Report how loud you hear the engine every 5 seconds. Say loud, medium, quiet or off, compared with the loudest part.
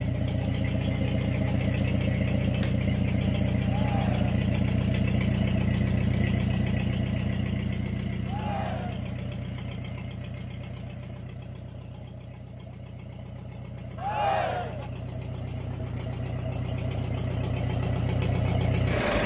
loud, loud, quiet, loud.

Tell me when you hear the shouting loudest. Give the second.
14 s.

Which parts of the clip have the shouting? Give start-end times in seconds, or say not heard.
3.6-4.3, 8.2-9.2, 13.9-14.9.